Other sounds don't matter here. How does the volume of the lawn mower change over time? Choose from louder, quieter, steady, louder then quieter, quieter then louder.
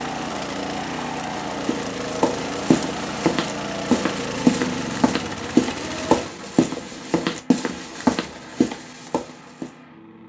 quieter.